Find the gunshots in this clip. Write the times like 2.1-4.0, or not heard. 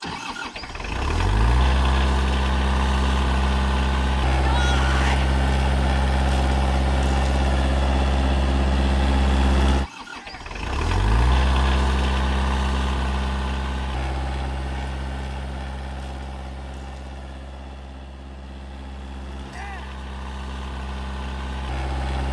not heard.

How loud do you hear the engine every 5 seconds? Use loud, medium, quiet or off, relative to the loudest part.
loud, loud, loud, quiet, medium.